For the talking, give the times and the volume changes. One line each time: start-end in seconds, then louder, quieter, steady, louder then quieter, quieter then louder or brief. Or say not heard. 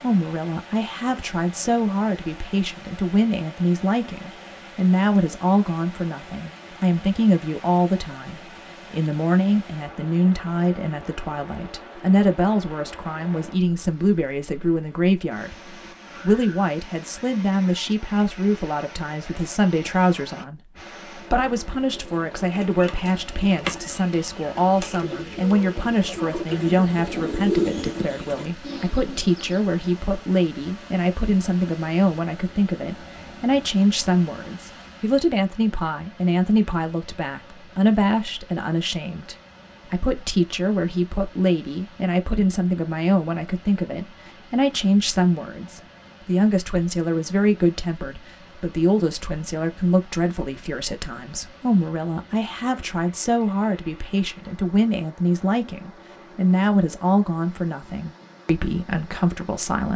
0.0-59.9 steady.